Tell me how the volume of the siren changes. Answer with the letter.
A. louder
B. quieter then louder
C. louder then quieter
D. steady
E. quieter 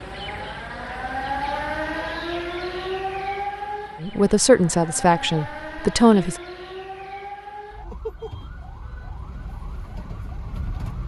E.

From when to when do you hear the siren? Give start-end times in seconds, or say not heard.
0.0-11.0.